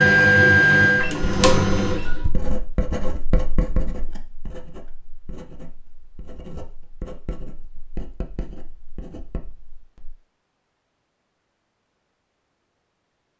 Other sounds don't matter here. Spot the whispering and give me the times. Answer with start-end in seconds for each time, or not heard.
not heard.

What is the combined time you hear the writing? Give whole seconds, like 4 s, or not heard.
9 s.